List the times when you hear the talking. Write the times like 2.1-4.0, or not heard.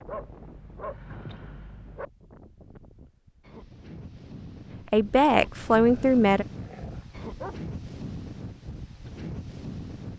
4.9-6.5.